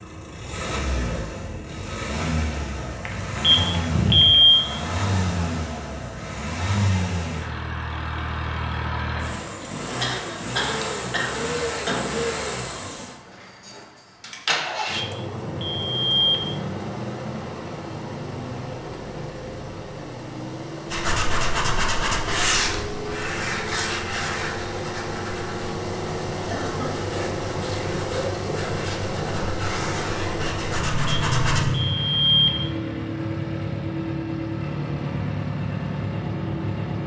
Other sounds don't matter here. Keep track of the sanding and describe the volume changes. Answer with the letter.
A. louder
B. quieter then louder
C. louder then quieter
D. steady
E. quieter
B.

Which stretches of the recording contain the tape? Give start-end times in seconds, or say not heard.
not heard.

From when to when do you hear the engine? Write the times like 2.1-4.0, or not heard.
0.0-37.0.